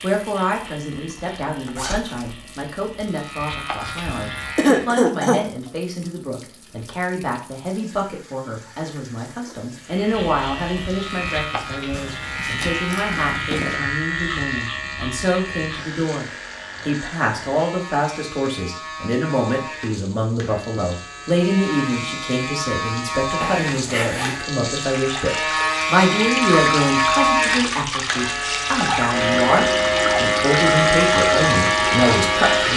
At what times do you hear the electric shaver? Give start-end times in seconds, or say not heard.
0.0-4.8, 9.8-32.7.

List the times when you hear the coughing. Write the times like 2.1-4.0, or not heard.
4.5-5.4.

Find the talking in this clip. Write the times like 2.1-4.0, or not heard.
0.0-32.7.